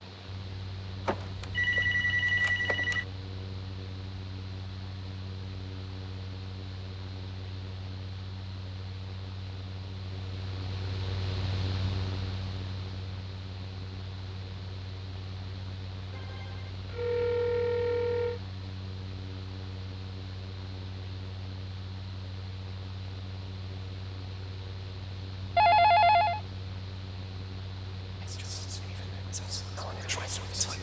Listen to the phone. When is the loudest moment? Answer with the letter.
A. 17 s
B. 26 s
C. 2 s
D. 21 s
B.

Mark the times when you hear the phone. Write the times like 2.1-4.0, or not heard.
1.1-3.0, 16.1-18.4, 25.6-26.4.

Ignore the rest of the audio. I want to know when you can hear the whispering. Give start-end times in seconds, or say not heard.
28.2-30.7.